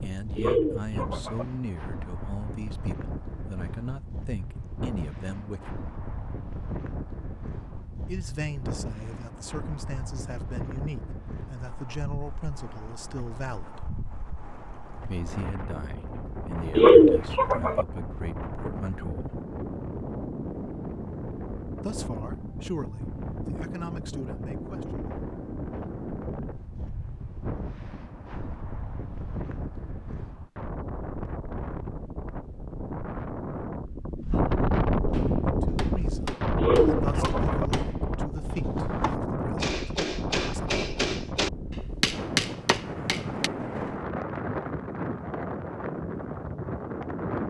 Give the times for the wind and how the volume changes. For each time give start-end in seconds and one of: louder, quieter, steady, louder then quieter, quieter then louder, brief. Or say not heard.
0.0-47.4 louder.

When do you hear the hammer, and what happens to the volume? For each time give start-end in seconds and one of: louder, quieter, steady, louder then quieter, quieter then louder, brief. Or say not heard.
35.1-43.5 louder.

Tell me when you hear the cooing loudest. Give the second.
17 s.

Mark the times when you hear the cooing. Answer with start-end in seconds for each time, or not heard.
0.3-1.4, 16.8-17.9, 36.5-37.6.